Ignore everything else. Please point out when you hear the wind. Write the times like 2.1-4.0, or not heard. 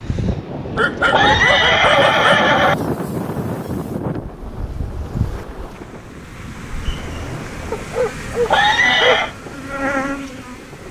0.0-10.8.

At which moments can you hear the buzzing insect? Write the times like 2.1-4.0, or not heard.
2.6-10.8.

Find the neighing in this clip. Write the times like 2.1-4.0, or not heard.
1.1-2.8, 8.4-9.3.